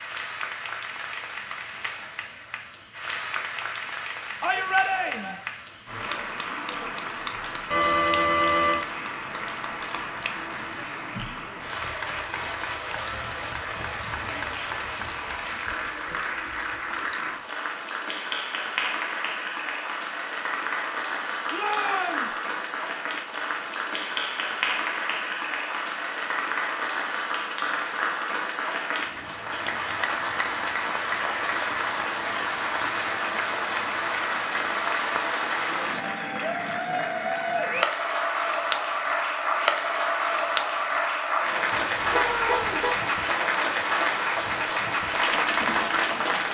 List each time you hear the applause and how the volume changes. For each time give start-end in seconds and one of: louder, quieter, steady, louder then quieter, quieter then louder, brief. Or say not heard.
0.0-46.4 louder.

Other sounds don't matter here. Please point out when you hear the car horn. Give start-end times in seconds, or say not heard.
7.7-8.8, 41.7-43.0.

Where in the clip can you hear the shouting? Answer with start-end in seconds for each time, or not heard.
4.4-5.4, 21.5-22.4, 42.1-42.9.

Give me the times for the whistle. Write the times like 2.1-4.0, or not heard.
not heard.